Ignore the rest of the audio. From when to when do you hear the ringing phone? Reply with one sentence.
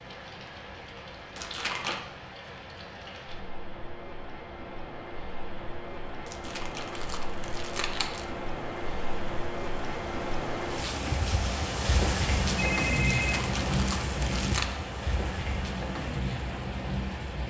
You can hear the ringing phone from 12.6 to 13.4 s.